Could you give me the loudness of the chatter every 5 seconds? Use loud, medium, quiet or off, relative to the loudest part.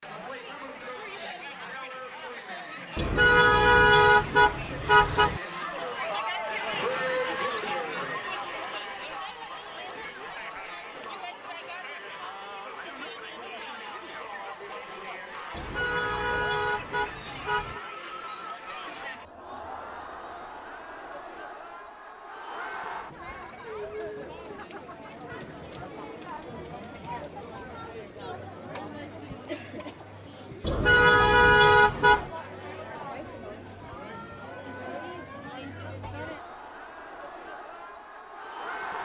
medium, loud, medium, medium, medium, medium, medium, medium.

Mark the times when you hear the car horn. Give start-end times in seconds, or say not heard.
3.0-5.4, 15.5-17.8, 30.6-32.3.